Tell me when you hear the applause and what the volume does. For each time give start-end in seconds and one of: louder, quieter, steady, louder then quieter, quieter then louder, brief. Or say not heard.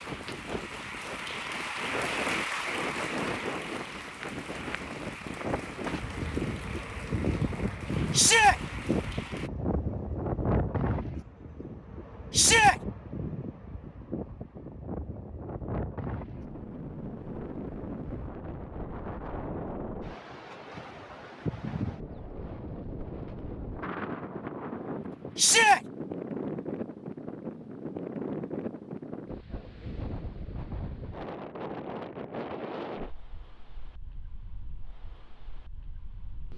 0.0-9.5 quieter.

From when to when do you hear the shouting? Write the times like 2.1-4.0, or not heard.
8.1-8.6, 12.3-12.8, 25.4-25.8.